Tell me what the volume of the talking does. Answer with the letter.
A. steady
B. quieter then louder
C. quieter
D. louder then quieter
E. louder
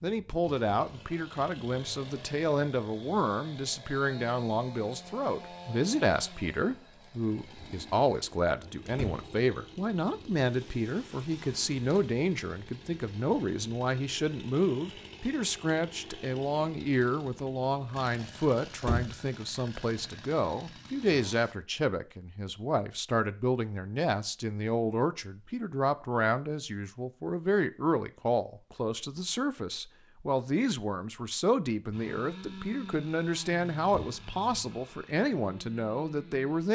A.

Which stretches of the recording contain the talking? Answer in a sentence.
The talking can be heard from 0.0 to 36.6 s.